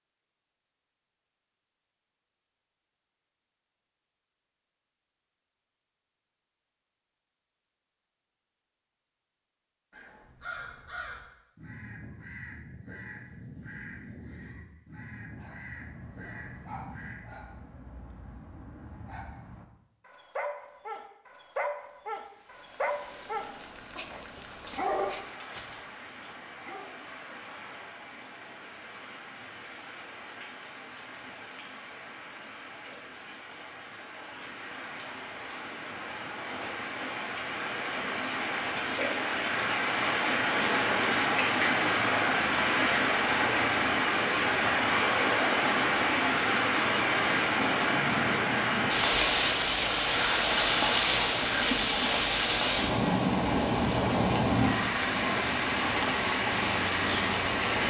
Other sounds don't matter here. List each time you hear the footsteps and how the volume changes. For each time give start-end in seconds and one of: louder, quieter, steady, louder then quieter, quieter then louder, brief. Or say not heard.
not heard.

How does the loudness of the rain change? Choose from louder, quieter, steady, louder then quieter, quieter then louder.
louder.